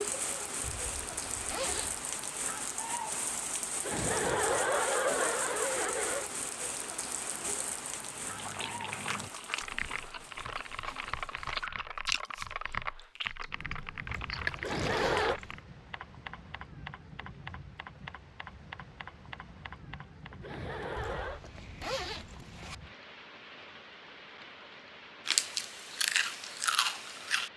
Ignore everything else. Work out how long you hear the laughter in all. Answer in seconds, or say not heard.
4 s.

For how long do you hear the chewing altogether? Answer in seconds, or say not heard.
9 s.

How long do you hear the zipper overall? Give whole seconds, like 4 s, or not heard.
5 s.